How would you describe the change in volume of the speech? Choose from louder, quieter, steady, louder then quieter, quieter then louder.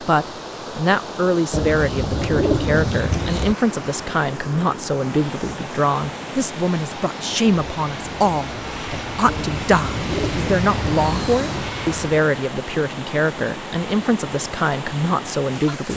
steady.